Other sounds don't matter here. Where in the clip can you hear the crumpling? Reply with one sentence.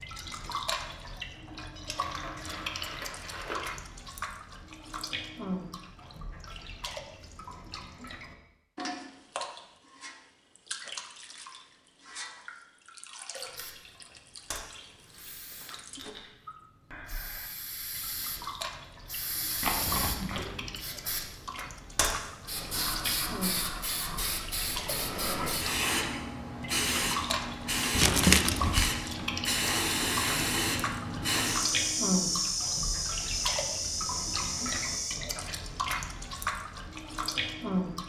You can hear the crumpling from 1.8 to 3.6 s, from 19.6 to 20.8 s and from 27.9 to 28.9 s.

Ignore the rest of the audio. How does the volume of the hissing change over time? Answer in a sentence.
The volume of the hissing goes up.